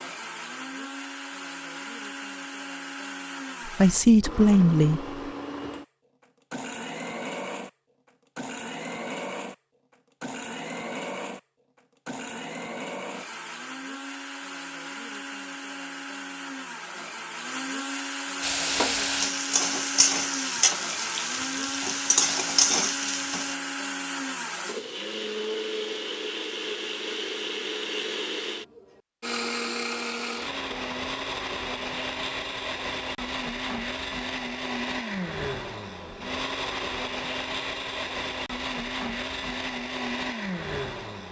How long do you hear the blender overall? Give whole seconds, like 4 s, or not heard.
41 s.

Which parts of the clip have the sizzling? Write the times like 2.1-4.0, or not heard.
18.4-23.6.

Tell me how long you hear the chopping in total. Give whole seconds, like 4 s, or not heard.
not heard.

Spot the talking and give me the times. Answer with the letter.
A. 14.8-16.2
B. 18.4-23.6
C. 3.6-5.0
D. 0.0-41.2
C.